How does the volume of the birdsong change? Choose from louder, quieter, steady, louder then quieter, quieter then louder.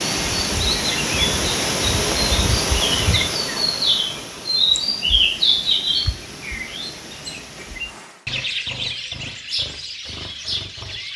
louder then quieter.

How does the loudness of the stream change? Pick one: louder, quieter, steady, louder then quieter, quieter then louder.
quieter.